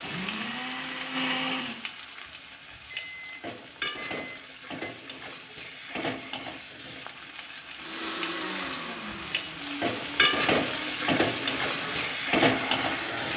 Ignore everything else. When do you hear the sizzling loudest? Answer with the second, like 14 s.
11 s.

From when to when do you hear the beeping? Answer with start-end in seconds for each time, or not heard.
2.9-4.9.